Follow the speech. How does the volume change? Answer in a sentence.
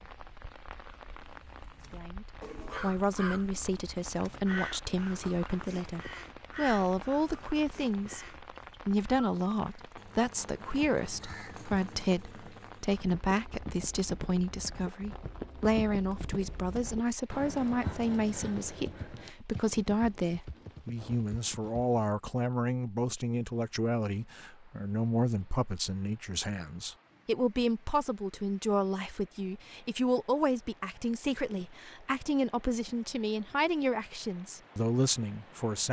The volume of the speech stays about the same.